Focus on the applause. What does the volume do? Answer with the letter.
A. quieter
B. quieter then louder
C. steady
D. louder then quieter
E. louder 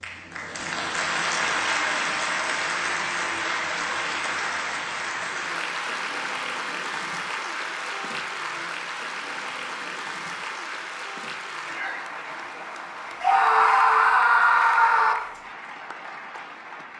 A.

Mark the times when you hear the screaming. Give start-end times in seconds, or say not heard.
13.2-15.2.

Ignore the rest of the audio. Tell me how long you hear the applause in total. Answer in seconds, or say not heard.
17 s.